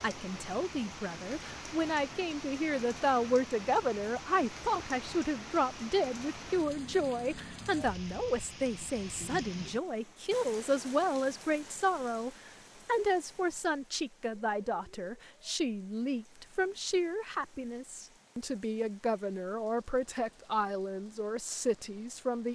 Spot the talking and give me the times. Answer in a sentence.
The talking can be heard from 0.0 to 22.5 s.